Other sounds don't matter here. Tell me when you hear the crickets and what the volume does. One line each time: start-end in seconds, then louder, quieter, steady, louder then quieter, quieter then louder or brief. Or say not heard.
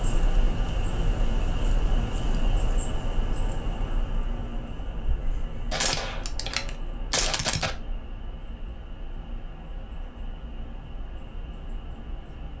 0.0-12.5 quieter.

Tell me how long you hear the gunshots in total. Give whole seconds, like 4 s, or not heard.
2 s.